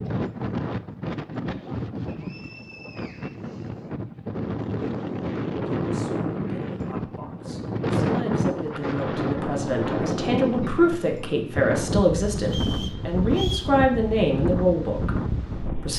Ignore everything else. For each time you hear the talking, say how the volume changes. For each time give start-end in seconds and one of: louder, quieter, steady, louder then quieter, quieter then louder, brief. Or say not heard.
5.8-15.9 louder.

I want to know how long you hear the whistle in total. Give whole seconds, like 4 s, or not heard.
3 s.